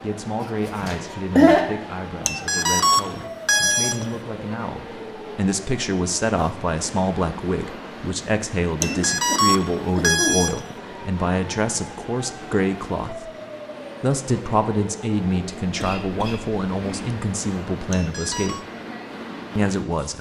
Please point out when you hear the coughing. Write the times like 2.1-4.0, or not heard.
0.4-1.6, 8.8-10.4, 15.8-17.2.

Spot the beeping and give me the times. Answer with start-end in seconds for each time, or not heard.
2.2-4.2, 8.8-10.8, 17.9-18.6.